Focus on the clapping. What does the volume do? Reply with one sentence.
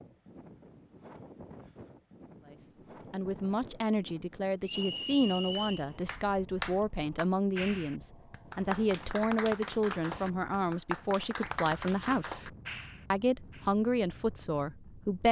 The loudness of the clapping stays about the same.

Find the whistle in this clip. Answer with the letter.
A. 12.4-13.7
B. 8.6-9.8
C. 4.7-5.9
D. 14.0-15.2
C.